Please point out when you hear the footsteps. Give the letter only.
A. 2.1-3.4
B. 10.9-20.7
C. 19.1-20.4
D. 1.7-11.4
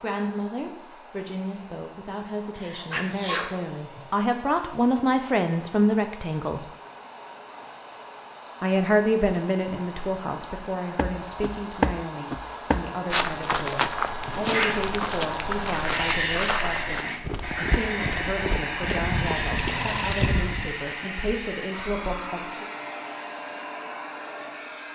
B.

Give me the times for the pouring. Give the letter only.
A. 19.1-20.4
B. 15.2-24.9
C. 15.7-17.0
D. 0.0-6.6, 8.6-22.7
A.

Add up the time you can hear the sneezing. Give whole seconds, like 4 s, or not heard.
4 s.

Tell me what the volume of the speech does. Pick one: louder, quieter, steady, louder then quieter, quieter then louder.
louder then quieter.